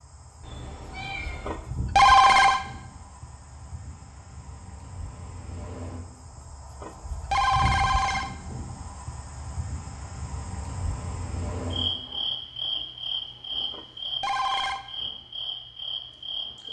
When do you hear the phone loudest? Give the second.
2 s.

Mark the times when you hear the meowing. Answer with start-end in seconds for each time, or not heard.
0.4-1.6.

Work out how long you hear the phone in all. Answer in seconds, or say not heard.
4 s.